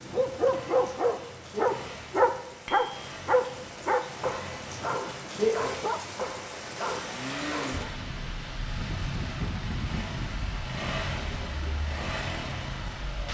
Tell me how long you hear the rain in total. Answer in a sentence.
You can hear the rain for 13 seconds altogether.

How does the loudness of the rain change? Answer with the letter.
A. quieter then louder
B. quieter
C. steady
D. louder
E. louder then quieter
E.